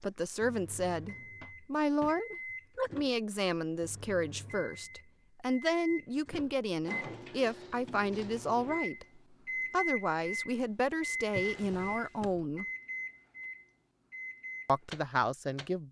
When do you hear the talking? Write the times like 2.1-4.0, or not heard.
0.0-12.7, 14.7-15.8.